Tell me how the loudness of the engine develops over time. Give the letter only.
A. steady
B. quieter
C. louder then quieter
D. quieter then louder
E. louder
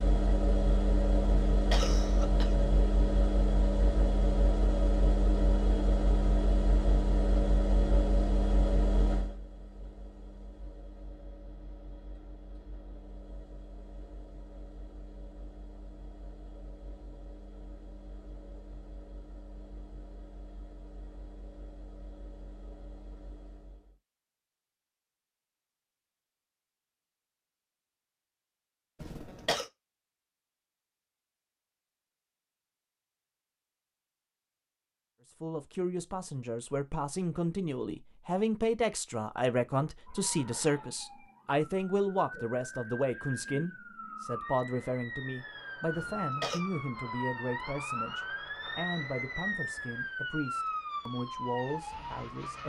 B.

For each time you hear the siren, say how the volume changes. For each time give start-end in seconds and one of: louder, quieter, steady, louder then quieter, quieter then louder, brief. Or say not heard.
40.0-52.6 louder.